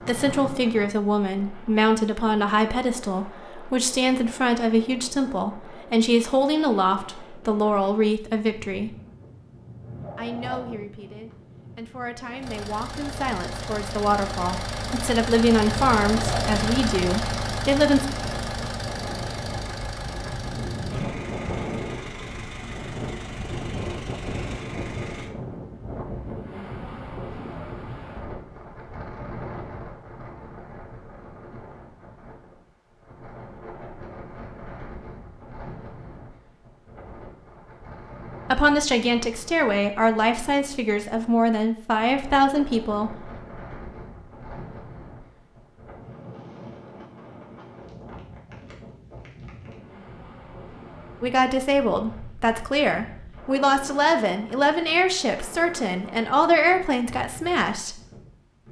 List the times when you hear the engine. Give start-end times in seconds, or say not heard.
12.3-25.4.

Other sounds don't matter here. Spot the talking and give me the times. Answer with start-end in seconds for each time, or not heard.
0.1-8.9, 10.2-18.1, 38.5-43.1, 51.2-58.0.